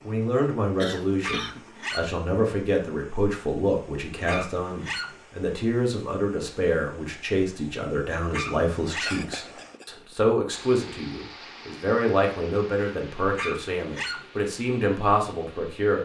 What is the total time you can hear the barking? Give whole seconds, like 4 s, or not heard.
4 s.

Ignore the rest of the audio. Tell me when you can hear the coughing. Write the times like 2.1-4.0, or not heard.
0.8-1.6, 9.1-9.9.